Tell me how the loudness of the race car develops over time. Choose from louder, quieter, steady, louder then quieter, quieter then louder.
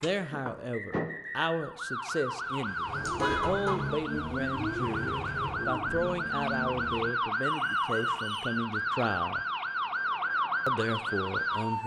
steady.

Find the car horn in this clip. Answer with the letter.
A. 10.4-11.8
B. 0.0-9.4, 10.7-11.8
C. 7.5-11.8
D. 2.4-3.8
D.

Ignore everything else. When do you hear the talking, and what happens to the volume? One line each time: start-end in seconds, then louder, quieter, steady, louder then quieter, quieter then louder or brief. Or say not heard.
0.0-9.4 steady
10.7-11.8 brief.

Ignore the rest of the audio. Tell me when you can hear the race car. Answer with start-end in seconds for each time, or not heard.
2.8-7.1.